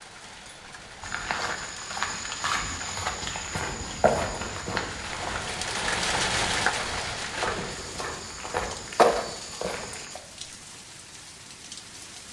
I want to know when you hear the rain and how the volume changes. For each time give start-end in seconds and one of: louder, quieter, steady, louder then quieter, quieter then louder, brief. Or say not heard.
0.0-12.2 louder then quieter.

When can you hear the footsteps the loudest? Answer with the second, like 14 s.
9 s.